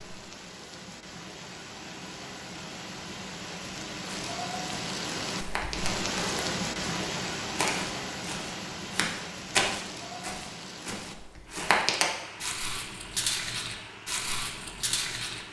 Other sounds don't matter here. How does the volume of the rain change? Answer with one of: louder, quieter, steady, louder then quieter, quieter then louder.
louder then quieter.